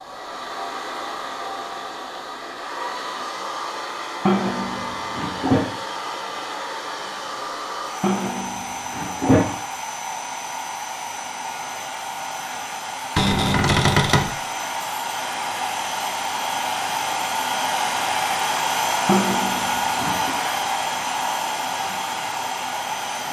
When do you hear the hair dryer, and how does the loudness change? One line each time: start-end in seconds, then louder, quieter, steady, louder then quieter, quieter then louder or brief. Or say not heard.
0.0-23.2 louder.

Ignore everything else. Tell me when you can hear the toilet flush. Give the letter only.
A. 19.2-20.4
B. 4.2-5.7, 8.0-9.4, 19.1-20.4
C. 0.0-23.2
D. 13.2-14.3
B.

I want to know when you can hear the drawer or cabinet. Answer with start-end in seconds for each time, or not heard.
13.2-14.3.